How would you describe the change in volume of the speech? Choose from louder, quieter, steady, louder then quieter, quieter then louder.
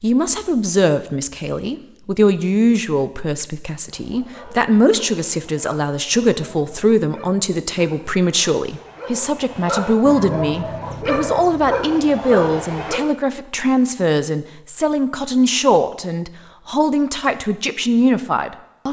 steady.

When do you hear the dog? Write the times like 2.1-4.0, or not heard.
3.9-13.0.